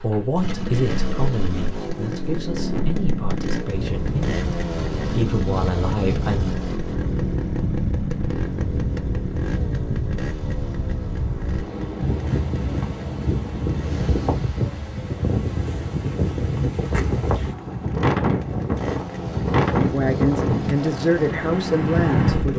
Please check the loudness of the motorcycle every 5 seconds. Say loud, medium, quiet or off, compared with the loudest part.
loud, loud, medium, medium, loud.